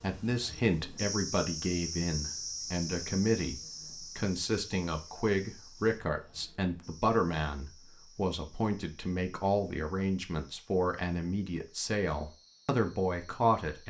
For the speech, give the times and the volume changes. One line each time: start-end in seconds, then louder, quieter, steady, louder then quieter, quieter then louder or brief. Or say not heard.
0.0-13.8 steady.